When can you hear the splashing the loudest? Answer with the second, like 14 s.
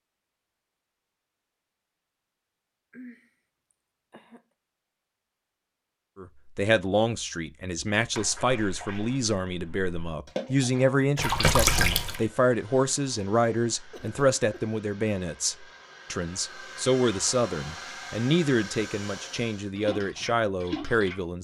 12 s.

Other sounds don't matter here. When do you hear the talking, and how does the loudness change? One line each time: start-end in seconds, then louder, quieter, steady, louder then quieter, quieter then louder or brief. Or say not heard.
6.2-21.4 steady.